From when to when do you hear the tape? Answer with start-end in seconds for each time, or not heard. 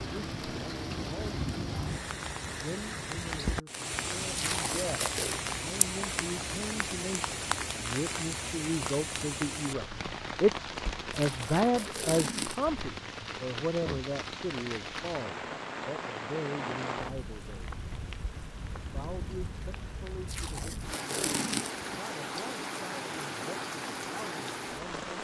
4.3-5.4, 11.1-12.8, 20.2-21.9.